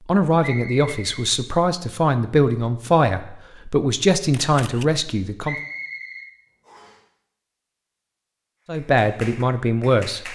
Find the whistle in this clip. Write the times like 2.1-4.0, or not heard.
0.4-1.2, 5.4-7.0.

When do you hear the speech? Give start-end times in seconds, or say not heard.
0.1-5.5, 8.7-10.3.